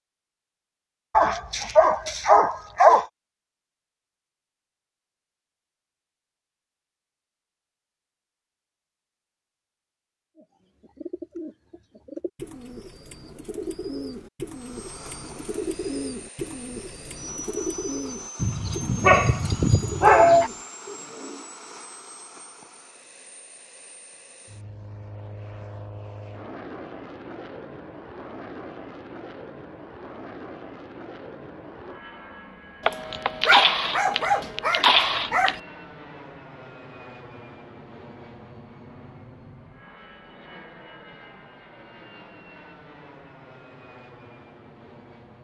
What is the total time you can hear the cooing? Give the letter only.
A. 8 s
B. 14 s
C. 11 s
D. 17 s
C.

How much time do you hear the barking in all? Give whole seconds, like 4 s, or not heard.
7 s.